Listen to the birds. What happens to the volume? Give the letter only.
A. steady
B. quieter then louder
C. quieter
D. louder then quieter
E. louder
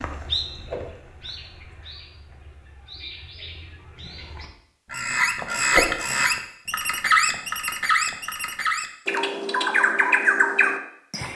E.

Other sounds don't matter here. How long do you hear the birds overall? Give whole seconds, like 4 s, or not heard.
11 s.